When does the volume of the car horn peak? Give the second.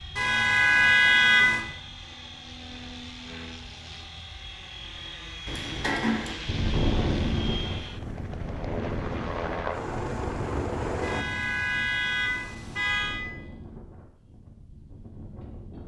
1 s.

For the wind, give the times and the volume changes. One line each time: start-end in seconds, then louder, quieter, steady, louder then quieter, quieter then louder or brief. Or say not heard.
6.5-15.8 quieter.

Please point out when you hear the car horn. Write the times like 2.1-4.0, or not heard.
0.1-1.6, 5.5-6.3, 11.0-13.2.